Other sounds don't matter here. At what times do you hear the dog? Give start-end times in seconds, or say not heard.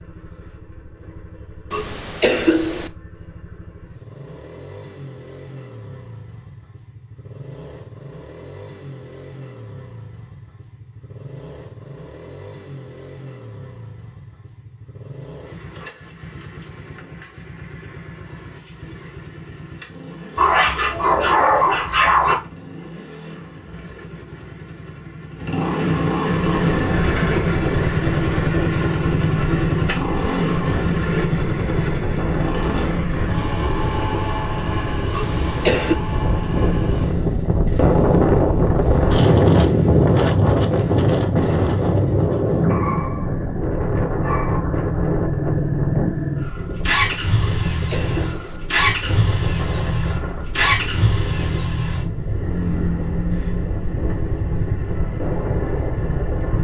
20.4-22.4, 42.6-43.4, 44.2-44.6.